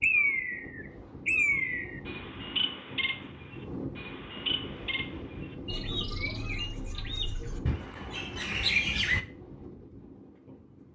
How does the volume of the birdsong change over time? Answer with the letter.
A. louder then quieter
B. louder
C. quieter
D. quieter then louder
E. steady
D.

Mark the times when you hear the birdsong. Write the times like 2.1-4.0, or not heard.
0.0-9.2.